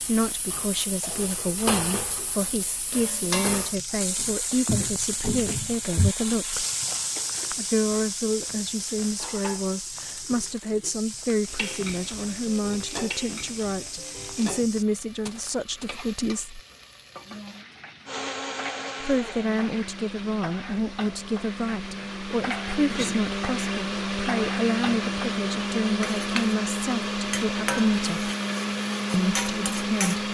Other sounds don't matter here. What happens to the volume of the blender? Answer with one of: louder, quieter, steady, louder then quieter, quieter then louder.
louder.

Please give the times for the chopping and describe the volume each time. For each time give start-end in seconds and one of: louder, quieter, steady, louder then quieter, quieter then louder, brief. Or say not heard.
not heard.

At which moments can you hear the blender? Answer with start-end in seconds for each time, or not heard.
18.1-30.2.